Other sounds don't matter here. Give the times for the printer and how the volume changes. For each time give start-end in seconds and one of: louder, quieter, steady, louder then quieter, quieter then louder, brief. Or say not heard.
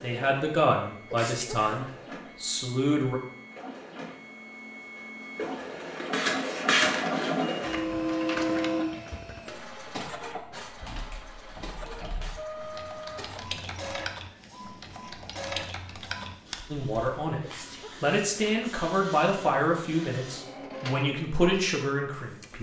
0.0-22.5 louder then quieter.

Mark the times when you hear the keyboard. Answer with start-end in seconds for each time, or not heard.
10.7-17.3.